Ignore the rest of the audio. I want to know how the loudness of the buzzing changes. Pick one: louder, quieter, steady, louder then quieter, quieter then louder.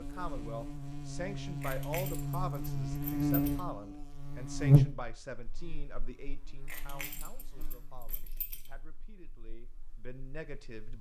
louder then quieter.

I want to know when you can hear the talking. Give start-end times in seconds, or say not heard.
0.0-10.9.